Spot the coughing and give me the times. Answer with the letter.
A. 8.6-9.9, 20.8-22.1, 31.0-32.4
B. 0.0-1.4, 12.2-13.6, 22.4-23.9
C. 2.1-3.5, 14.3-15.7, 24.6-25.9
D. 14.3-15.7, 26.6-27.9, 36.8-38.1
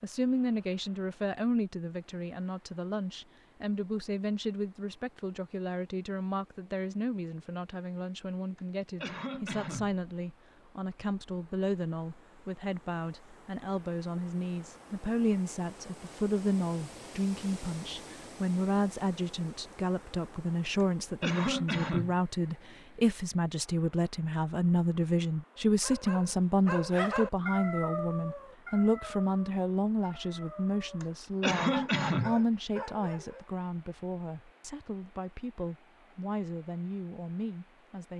A.